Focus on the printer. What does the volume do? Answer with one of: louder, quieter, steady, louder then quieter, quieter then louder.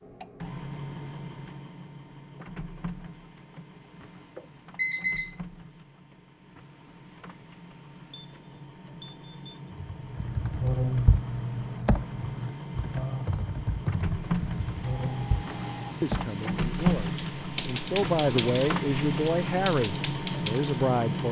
quieter then louder.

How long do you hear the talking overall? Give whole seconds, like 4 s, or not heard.
5 s.